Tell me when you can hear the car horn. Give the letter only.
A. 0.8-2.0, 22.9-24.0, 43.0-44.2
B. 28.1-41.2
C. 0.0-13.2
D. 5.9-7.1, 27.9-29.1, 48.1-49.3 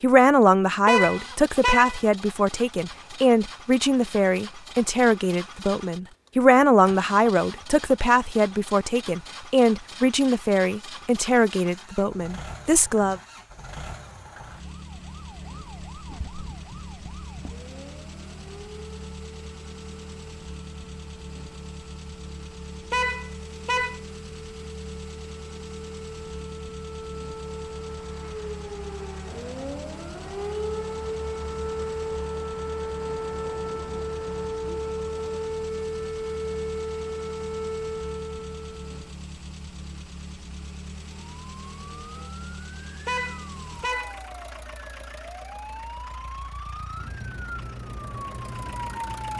A.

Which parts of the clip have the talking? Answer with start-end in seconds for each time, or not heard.
0.0-13.2.